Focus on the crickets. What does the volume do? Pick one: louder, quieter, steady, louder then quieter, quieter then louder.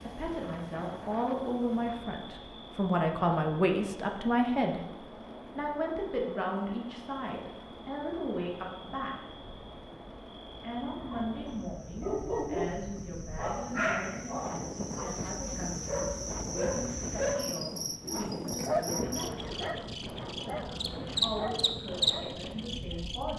louder.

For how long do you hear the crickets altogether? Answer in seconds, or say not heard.
23 s.